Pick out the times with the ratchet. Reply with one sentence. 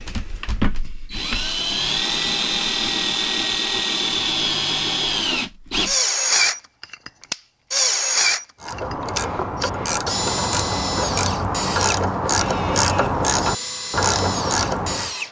The ratchet can be heard from 8.6 to 15.2 s.